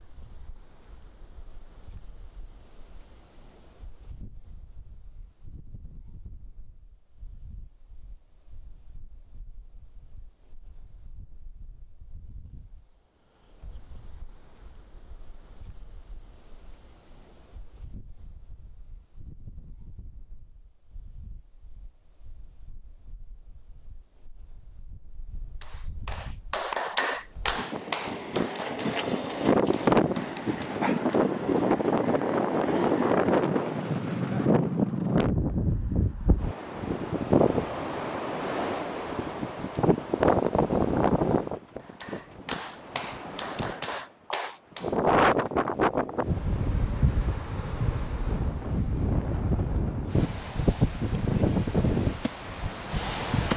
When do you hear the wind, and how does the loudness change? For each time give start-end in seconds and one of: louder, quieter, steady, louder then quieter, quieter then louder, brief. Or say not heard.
0.0-53.5 louder.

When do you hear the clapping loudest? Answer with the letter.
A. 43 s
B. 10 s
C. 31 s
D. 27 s
D.